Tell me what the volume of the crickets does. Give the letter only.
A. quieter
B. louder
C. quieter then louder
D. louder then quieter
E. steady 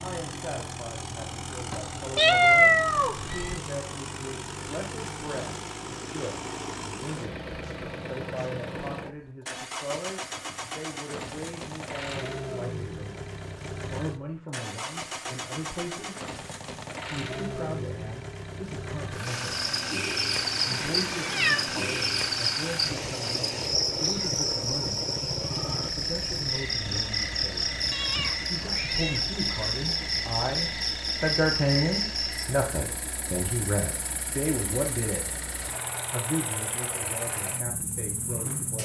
A.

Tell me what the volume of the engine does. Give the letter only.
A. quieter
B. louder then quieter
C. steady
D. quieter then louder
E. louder
C.